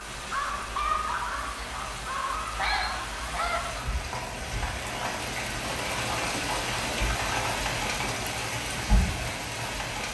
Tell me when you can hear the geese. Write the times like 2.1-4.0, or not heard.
0.0-3.9.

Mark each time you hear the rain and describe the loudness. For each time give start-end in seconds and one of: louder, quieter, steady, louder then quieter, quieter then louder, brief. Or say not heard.
0.0-10.1 louder.